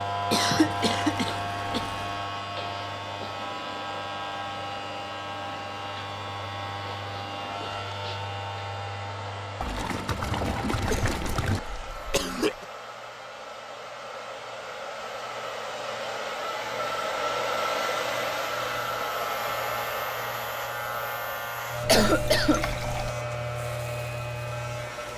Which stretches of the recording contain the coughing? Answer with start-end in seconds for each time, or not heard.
0.3-1.9, 10.7-12.7, 21.9-23.1.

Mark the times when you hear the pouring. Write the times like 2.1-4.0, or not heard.
0.7-2.2, 9.6-11.6, 22.0-23.1.